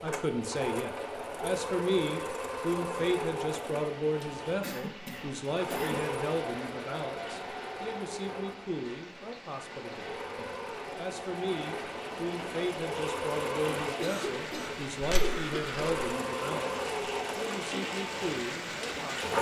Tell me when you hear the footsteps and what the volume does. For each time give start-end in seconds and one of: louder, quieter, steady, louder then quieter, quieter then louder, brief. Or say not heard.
not heard.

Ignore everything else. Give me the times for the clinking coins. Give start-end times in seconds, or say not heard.
15.0-16.0.